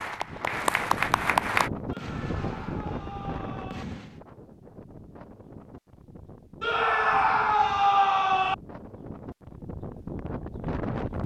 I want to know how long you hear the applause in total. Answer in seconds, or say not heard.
2 s.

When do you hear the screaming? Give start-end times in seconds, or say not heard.
1.9-3.9, 6.6-8.6.